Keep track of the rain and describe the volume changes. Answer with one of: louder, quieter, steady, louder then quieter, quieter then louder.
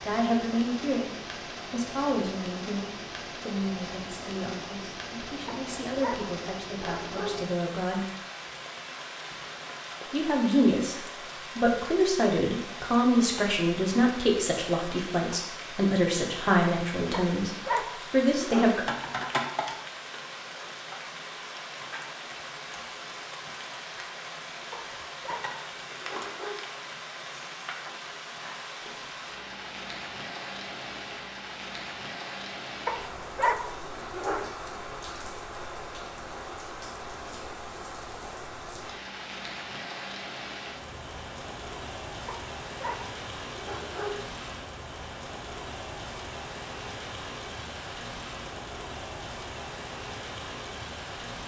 steady.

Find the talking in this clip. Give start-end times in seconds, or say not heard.
0.0-1.1, 1.7-8.1, 10.1-18.9.